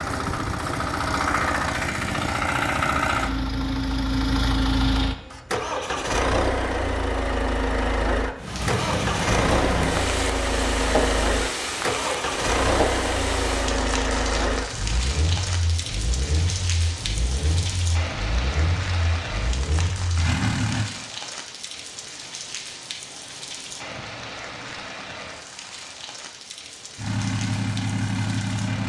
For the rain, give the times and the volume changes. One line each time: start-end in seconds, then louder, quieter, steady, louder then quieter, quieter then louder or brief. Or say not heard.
8.3-28.8 quieter.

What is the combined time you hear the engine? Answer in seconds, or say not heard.
23 s.